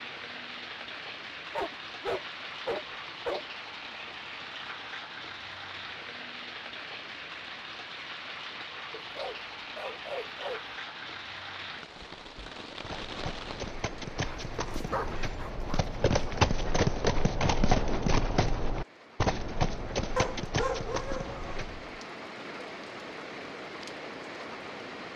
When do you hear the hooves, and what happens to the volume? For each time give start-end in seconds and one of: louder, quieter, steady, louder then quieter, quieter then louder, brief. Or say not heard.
12.8-22.0 louder then quieter.